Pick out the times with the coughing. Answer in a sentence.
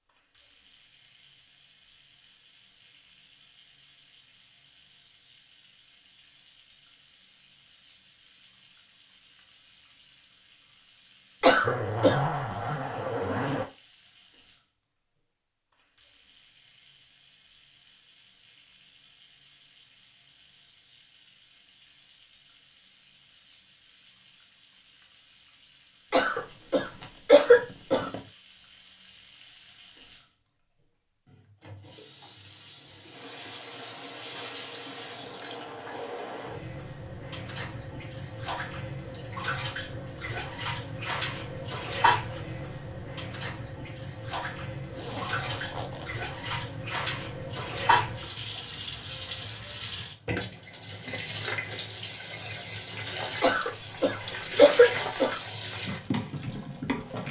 You can hear the coughing from 11.4 to 12.2 s, from 26.1 to 28.1 s and from 53.4 to 55.4 s.